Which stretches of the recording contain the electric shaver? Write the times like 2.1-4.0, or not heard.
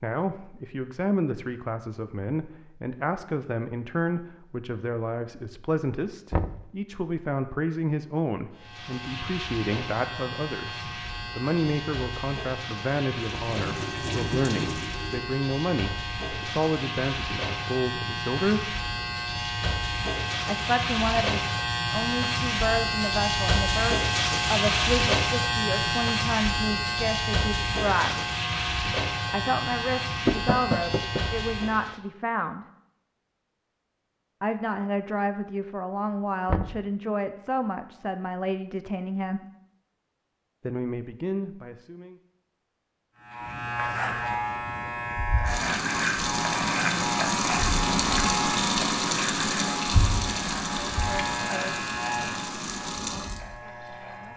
8.6-32.0, 43.2-54.3.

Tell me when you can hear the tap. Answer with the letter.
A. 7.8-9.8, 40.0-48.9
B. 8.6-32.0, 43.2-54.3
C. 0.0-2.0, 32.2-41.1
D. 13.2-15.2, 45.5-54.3
D.